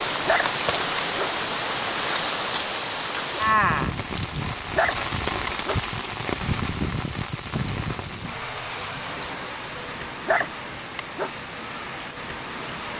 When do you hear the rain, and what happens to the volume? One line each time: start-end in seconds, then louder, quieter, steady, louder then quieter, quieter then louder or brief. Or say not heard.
0.0-12.9 quieter.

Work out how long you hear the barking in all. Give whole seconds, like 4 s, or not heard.
3 s.